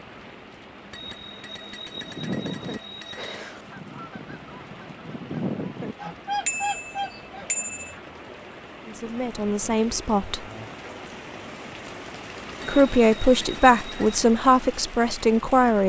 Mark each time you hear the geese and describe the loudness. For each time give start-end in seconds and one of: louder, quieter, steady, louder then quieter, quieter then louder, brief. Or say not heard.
1.9-8.1 quieter then louder.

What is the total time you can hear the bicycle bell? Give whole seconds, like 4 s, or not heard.
6 s.